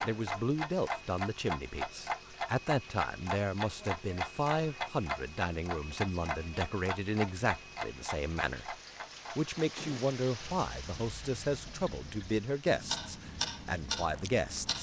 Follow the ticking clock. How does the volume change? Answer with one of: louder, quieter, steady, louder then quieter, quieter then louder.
quieter then louder.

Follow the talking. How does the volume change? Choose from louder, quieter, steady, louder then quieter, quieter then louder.
steady.